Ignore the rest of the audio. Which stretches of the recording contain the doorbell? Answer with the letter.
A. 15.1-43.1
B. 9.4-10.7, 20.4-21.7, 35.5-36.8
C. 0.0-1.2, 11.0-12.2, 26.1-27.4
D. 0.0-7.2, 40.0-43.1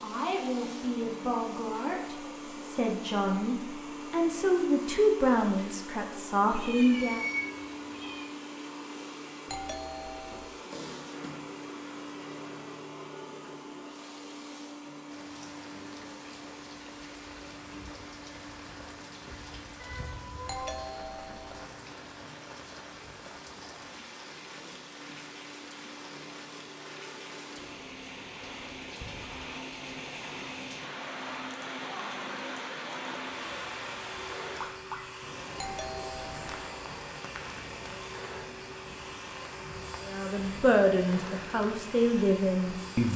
B.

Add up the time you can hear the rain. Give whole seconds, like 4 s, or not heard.
28 s.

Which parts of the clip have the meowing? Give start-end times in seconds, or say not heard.
6.5-8.3, 19.8-20.9, 34.3-35.0.